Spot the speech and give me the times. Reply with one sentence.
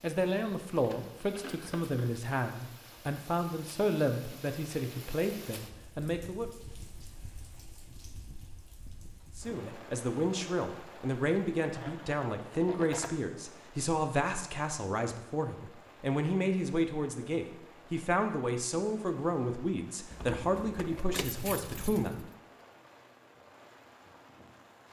You can hear the speech from 0.0 to 6.5 s and from 9.3 to 22.2 s.